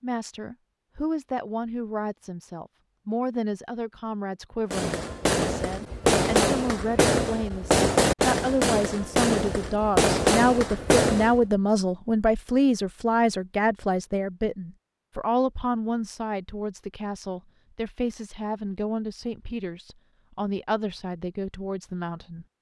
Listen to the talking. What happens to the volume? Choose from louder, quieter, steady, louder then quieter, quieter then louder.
louder then quieter.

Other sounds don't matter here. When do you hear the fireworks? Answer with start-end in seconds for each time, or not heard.
4.7-11.4.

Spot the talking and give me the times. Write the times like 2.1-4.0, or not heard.
0.0-22.4.